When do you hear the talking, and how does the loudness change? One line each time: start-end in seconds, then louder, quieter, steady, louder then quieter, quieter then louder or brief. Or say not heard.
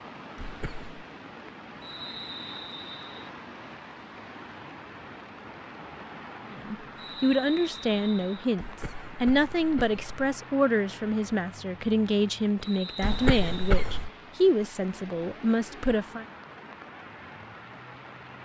6.5-16.2 steady.